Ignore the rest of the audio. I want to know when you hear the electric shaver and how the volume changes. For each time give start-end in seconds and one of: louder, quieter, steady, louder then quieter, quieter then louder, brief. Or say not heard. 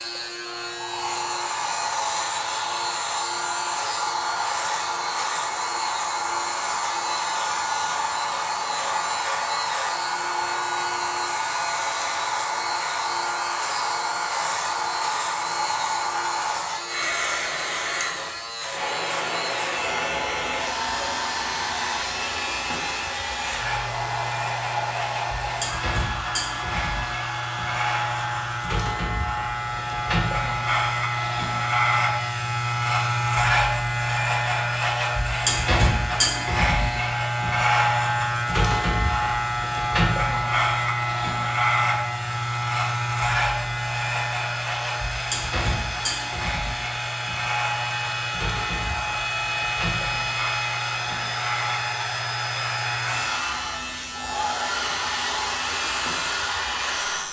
0.0-57.2 louder then quieter.